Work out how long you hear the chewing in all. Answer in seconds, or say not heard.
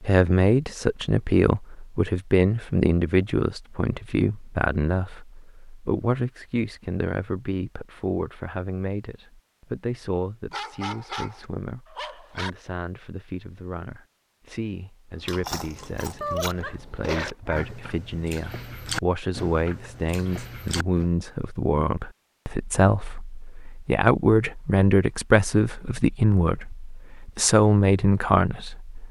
6 s.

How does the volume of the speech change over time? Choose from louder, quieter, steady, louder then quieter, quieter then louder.
quieter then louder.